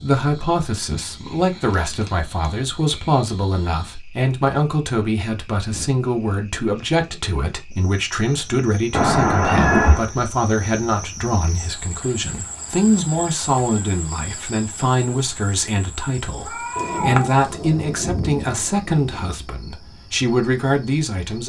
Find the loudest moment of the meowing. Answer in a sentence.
The loudest moment of the meowing is at 10 seconds.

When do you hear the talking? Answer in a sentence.
You can hear the talking from 0.0 to 21.4 s.